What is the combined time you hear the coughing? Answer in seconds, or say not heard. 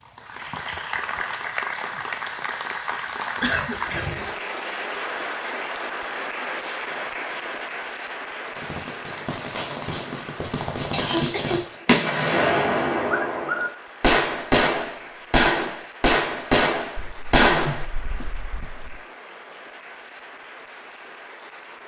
4 s.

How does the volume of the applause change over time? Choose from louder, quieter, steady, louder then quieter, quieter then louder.
quieter.